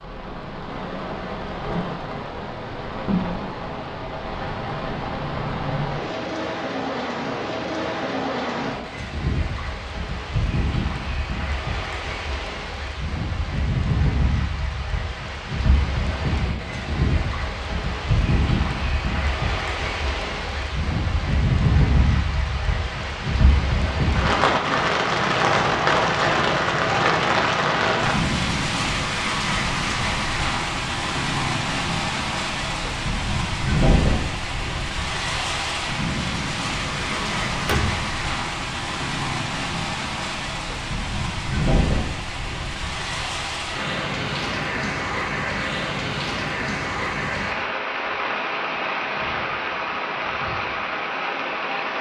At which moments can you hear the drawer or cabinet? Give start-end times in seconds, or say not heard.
36.9-38.0.